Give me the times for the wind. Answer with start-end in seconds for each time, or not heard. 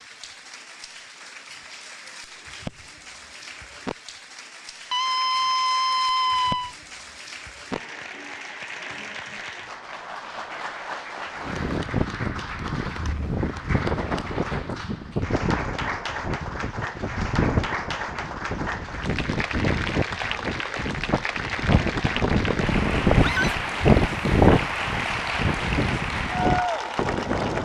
11.3-27.6.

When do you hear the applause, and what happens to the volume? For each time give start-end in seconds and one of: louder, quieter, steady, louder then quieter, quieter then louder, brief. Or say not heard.
0.0-27.6 louder.